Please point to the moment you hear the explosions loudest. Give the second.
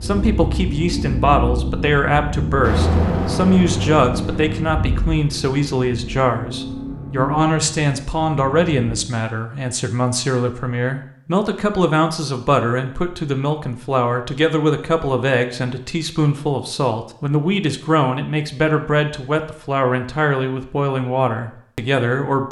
3 s.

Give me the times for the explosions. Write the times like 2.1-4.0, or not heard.
2.6-4.7.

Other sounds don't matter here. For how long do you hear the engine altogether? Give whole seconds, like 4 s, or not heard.
9 s.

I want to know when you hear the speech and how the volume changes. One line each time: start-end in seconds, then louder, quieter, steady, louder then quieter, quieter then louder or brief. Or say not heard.
0.0-22.4 steady.